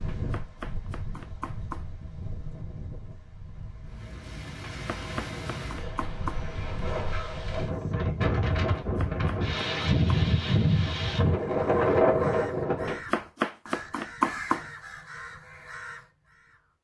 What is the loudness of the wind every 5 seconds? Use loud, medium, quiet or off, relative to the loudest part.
quiet, medium, loud, off.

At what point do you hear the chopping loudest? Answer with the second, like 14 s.
14 s.